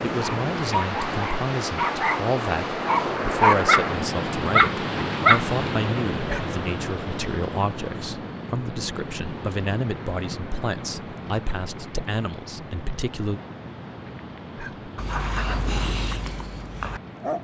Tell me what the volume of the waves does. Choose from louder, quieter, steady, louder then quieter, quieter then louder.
quieter.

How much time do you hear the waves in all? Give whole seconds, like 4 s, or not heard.
17 s.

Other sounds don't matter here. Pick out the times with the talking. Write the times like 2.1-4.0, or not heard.
0.0-13.4.